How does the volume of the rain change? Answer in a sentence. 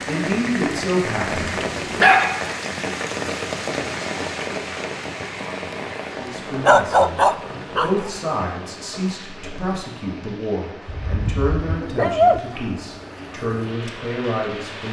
The volume of the rain goes down.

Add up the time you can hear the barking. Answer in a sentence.
You can hear the barking for 4 seconds altogether.